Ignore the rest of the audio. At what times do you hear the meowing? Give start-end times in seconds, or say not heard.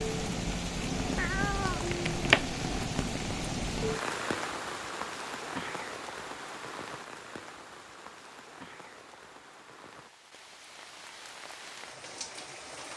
1.1-2.5.